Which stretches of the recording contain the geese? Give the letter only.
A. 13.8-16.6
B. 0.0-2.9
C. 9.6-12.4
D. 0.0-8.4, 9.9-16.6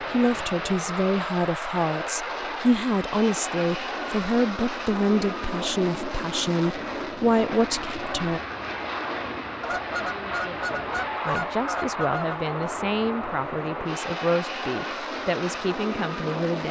C.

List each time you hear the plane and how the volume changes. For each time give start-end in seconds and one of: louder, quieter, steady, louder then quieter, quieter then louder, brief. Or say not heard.
0.0-16.6 steady.